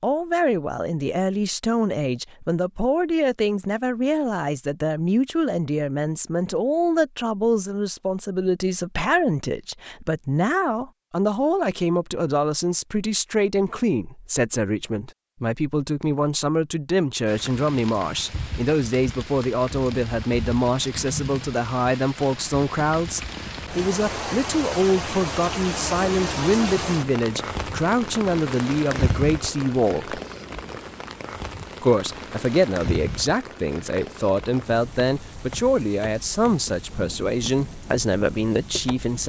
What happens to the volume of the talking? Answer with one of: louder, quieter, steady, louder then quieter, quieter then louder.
steady.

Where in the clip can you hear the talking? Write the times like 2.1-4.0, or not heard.
0.0-30.2, 31.8-39.2.